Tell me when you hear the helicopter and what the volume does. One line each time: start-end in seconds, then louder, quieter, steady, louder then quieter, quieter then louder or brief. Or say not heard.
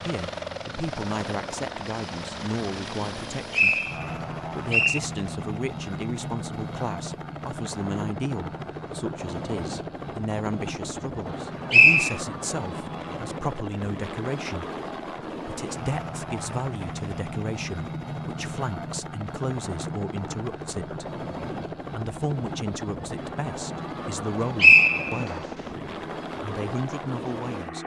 0.0-27.8 steady.